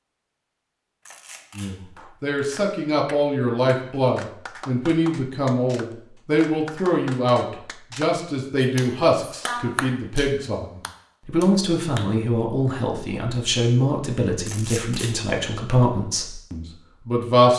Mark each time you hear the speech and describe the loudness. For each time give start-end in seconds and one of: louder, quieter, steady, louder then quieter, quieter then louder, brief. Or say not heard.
1.6-17.5 steady.